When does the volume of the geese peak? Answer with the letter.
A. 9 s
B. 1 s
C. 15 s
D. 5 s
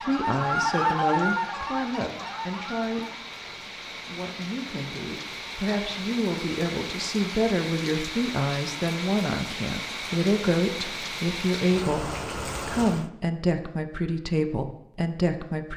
B.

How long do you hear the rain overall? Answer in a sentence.
You can hear the rain for 13 seconds altogether.